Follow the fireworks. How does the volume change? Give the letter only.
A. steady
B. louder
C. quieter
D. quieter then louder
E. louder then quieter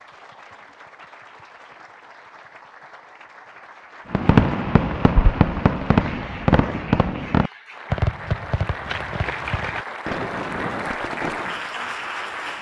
C.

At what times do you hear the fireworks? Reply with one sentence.
The fireworks can be heard from 4.1 to 11.7 s.